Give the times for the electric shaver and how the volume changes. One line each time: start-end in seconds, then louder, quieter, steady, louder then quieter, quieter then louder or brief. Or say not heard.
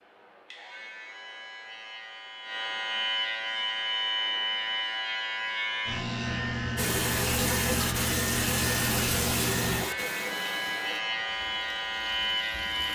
0.0-12.9 louder.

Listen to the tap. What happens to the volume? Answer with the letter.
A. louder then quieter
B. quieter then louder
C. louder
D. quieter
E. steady
D.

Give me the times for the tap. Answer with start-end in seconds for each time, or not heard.
6.8-12.9.